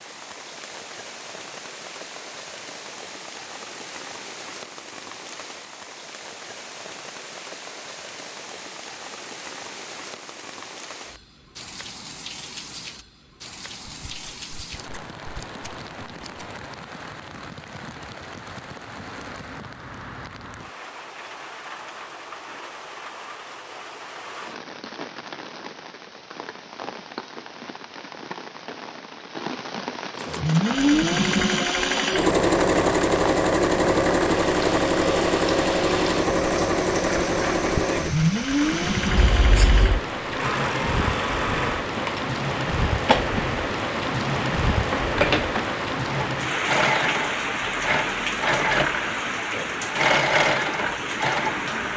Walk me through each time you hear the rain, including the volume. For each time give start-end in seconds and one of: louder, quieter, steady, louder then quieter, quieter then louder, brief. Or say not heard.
0.0-51.9 louder.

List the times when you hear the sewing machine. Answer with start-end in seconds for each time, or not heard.
30.1-51.9.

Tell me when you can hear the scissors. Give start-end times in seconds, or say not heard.
13.8-16.4, 39.1-40.0.